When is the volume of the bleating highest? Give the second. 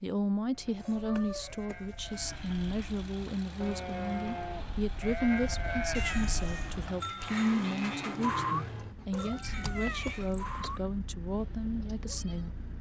8 s.